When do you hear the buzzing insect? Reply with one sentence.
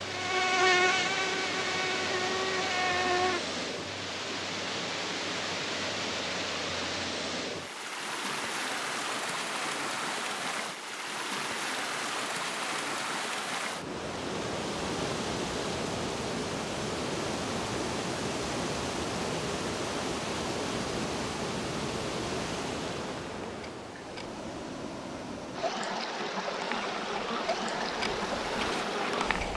You can hear the buzzing insect from 0.0 to 3.4 s and from 23.3 to 29.5 s.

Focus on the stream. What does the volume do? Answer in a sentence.
The volume of the stream stays about the same.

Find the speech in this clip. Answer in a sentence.
You can't hear the speech here.